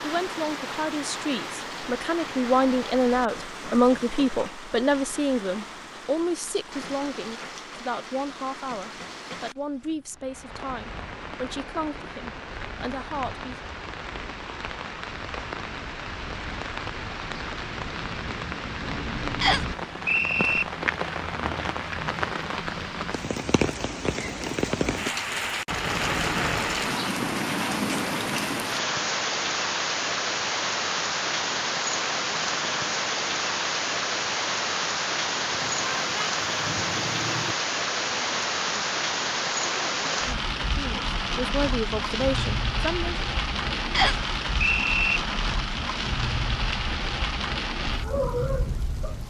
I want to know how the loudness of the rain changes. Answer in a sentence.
The volume of the rain goes up.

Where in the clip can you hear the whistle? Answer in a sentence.
You can hear the whistle from 19.4 to 20.6 s and from 43.9 to 45.2 s.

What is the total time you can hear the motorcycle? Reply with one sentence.
The motorcycle can't be heard in this clip.